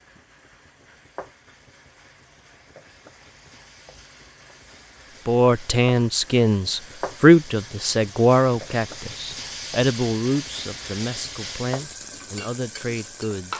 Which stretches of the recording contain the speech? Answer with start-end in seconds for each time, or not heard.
5.2-13.5.